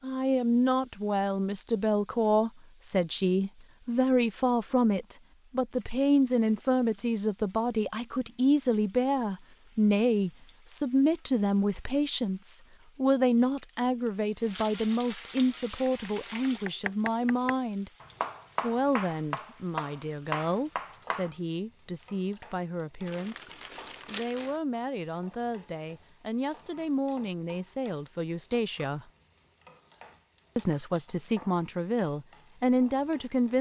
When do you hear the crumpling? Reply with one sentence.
You can hear the crumpling from 23.1 to 24.6 s.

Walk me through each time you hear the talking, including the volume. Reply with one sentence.
The talking can be heard from 0.0 to 17.9 s, at a steady volume; from 18.6 to 29.1 s, at a steady volume; and briefly from 30.6 to 33.5 s.